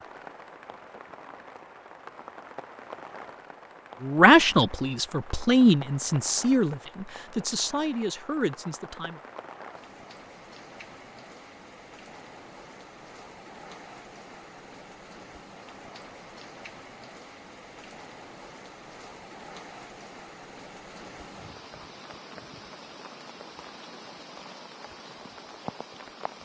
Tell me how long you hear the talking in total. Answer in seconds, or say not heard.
5 s.